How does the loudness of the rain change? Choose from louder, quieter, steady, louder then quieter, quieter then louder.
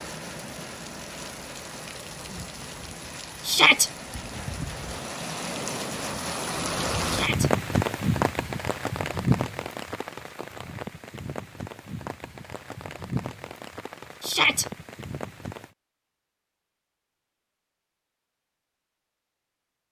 louder then quieter.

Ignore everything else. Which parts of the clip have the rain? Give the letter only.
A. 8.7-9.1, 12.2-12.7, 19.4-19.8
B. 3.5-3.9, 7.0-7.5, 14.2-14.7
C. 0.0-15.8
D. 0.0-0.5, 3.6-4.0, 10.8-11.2
C.